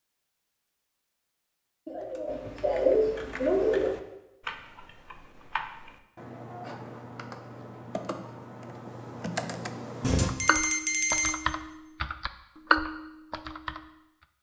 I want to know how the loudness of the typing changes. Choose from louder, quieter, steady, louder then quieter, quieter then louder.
louder.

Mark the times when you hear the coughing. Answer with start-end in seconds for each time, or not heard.
1.9-4.0.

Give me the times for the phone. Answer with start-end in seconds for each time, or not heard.
10.0-11.3.